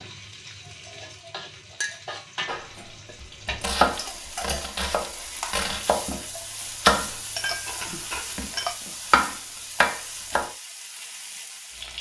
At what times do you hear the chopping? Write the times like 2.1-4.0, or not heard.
2.5-10.5.